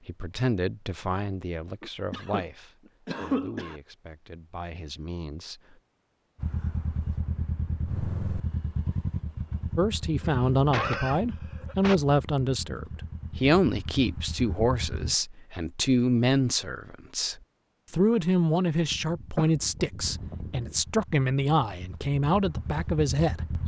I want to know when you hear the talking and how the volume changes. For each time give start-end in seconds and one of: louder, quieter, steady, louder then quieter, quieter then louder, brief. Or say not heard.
0.1-5.8 quieter then louder
9.8-23.6 steady.